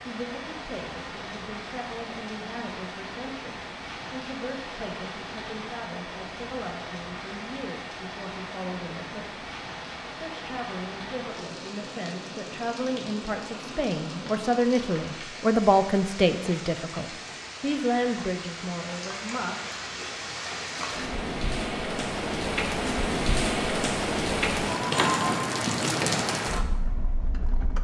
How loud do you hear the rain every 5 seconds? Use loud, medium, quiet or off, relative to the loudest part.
medium, medium, medium, medium, loud, loud.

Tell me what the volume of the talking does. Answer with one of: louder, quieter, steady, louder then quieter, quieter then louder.
louder.